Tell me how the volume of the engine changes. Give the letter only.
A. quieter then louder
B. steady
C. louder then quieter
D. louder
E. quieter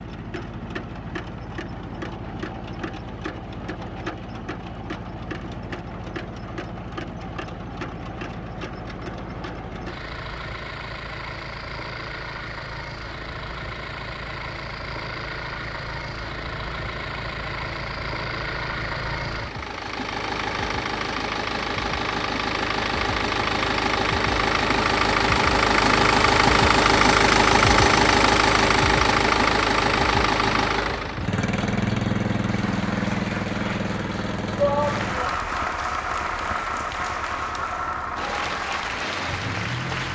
C.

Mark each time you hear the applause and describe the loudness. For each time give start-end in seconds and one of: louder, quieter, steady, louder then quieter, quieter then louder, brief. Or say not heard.
32.5-40.0 louder.